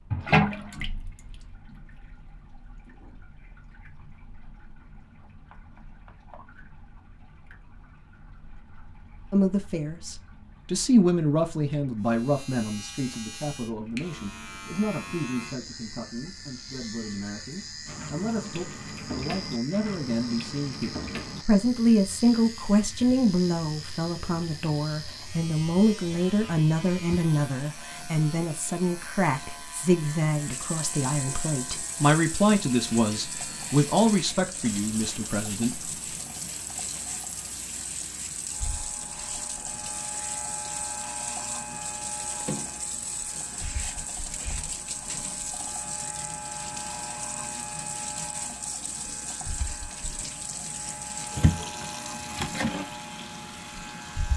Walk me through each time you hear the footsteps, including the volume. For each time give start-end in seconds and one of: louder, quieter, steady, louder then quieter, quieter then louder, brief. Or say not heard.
not heard.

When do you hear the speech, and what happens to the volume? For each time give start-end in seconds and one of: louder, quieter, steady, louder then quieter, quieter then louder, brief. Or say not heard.
9.3-35.8 quieter then louder.